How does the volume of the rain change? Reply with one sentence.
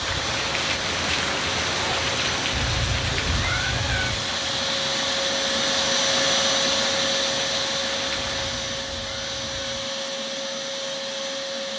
The volume of the rain goes down.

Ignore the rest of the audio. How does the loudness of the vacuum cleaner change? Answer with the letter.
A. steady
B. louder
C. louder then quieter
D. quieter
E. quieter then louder
C.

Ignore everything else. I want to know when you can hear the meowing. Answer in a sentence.
You can hear the meowing from 2.5 to 4.3 s and from 8.3 to 9.9 s.